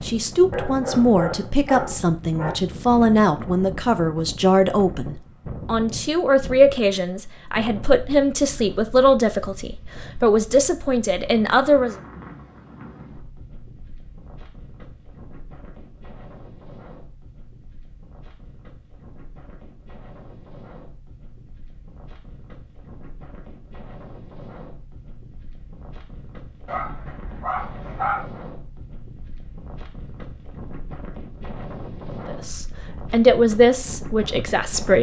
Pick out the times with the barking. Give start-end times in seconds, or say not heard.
0.5-2.5, 26.6-28.2.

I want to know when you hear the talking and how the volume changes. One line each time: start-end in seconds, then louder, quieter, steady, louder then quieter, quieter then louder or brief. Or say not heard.
0.0-11.9 steady
32.2-34.9 brief.